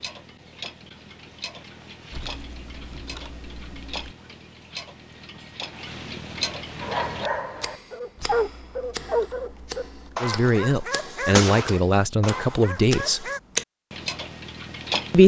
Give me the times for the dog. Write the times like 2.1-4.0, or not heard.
6.8-13.4.